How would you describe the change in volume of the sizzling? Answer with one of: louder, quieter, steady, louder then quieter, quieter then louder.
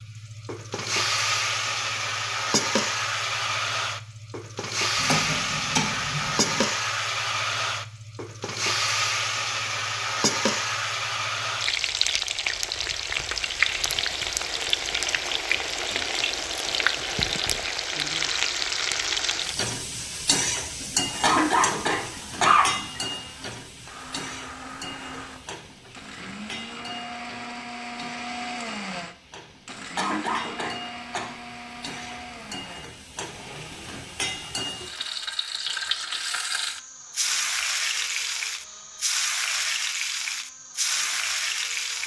quieter then louder.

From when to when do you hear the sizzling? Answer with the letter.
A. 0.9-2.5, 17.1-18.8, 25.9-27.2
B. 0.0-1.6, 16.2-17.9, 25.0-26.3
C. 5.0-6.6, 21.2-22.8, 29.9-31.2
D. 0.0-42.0
D.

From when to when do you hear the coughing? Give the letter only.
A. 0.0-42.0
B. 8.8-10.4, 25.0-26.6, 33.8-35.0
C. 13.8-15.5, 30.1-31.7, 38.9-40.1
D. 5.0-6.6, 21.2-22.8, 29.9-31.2
D.